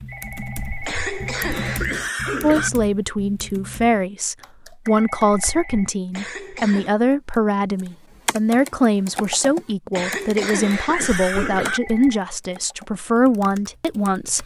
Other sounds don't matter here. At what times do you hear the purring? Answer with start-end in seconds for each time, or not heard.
not heard.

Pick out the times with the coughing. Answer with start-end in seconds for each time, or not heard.
0.8-2.7, 6.1-6.9, 9.9-11.8.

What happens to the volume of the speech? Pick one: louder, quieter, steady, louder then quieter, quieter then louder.
steady.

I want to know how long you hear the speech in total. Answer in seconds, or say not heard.
12 s.